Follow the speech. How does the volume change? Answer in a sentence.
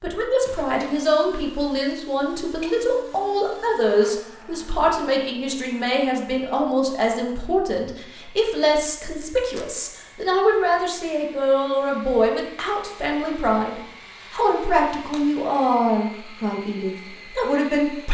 The loudness of the speech stays about the same.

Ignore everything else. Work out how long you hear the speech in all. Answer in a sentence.
The speech can be heard for 18 seconds in total.